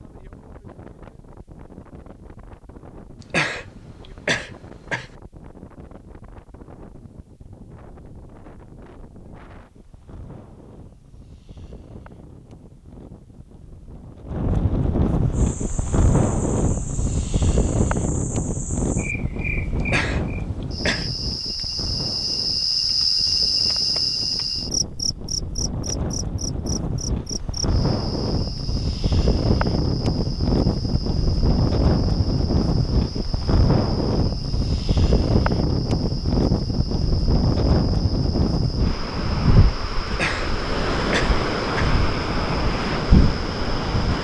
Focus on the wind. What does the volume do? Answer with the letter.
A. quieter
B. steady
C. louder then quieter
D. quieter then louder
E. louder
E.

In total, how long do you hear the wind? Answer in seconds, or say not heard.
44 s.